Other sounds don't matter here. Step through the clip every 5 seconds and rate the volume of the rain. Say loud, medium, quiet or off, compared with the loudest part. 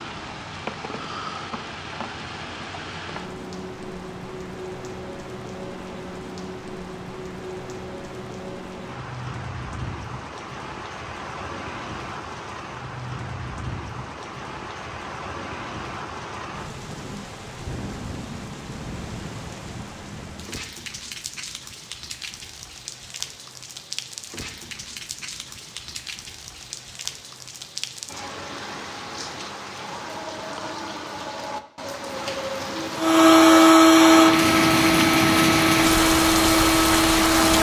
quiet, quiet, quiet, quiet, quiet, quiet, medium, loud.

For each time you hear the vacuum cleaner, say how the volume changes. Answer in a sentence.
The vacuum cleaner can be heard from 33.0 to 37.5 s, getting quieter.